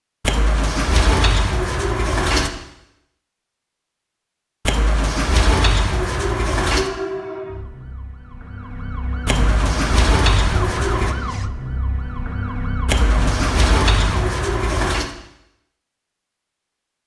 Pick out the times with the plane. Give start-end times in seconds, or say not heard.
not heard.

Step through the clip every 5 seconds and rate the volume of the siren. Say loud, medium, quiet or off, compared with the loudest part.
off, loud, loud, off.